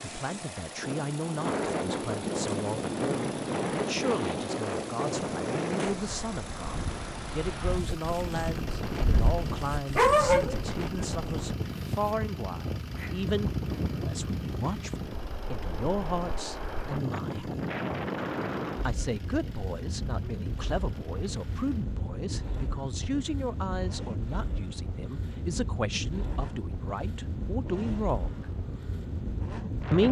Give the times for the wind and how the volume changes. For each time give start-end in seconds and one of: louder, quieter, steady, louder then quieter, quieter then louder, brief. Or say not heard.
0.0-30.0 quieter.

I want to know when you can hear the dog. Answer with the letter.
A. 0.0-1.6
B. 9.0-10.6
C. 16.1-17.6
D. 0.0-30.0
B.